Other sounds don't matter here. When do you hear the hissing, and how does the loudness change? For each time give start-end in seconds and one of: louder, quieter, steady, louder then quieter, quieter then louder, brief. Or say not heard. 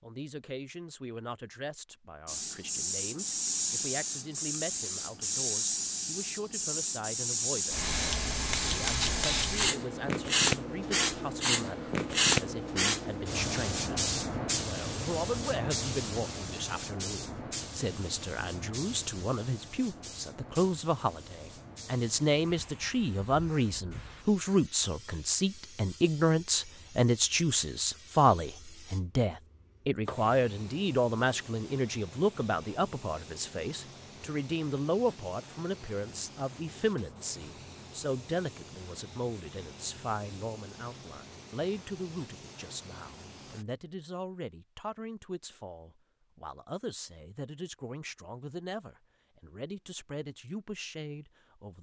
2.2-43.6 quieter.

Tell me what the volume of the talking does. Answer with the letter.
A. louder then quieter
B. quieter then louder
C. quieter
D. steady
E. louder
A.